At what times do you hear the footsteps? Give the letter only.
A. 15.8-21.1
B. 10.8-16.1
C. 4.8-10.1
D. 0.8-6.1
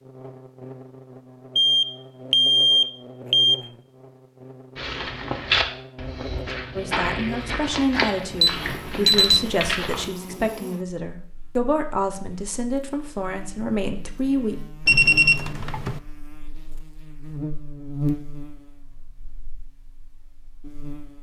C.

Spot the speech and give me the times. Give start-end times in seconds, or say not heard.
6.8-14.6.